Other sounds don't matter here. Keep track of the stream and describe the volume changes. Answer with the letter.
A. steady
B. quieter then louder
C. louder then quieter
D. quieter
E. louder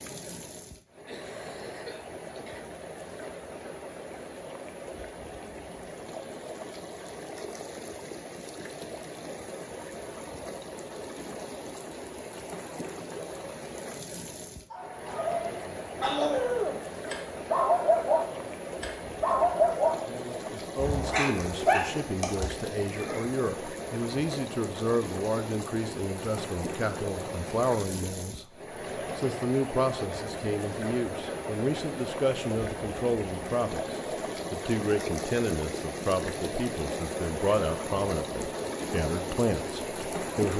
E.